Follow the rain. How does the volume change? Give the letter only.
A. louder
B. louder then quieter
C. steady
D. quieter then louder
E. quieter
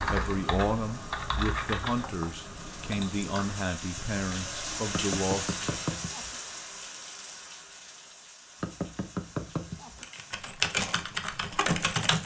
B.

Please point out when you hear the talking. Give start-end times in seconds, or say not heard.
0.0-5.5.